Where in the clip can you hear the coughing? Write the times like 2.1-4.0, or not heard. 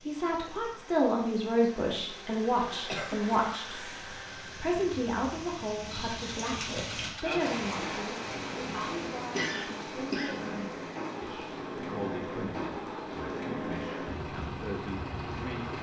2.9-4.1, 8.7-10.4.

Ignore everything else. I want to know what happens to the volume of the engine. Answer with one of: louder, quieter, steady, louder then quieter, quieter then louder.
louder.